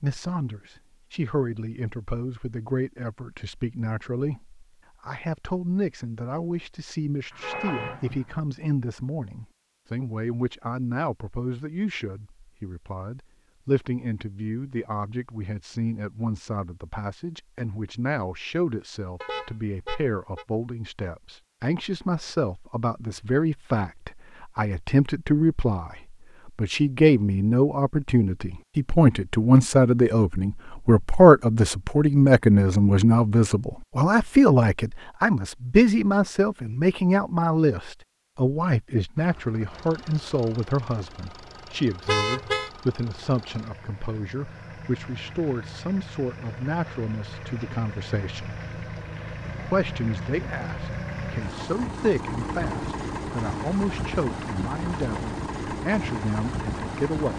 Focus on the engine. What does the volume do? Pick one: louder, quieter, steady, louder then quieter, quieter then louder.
louder.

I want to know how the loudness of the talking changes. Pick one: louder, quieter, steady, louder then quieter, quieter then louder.
louder then quieter.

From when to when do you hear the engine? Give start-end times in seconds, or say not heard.
39.1-57.3.